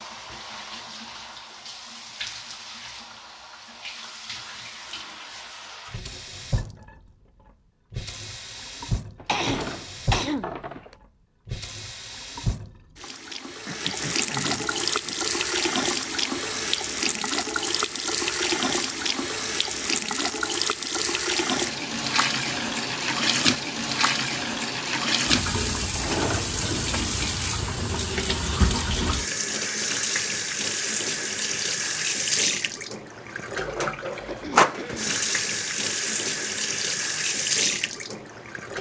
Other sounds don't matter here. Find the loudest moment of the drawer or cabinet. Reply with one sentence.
The loudest moment of the drawer or cabinet is at 26 seconds.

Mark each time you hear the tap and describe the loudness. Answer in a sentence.
The tap can be heard from 0.0 to 38.7 s, getting louder.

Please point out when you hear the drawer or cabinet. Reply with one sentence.
You can hear the drawer or cabinet from 9.2 to 10.9 s and from 25.8 to 26.6 s.